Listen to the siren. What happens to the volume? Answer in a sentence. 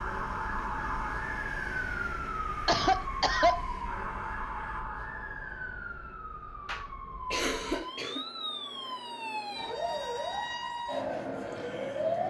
The loudness of the siren goes down, then up.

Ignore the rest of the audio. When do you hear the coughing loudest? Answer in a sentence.
The loudest moment of the coughing is at 3 seconds.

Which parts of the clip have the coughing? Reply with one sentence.
You can hear the coughing from 2.6 to 3.6 s and from 6.7 to 8.2 s.